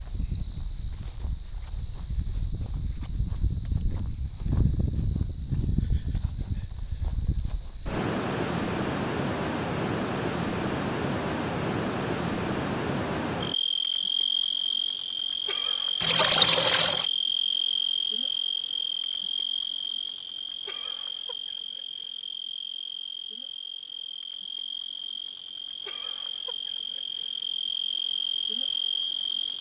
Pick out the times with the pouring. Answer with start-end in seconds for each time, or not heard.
16.0-17.1.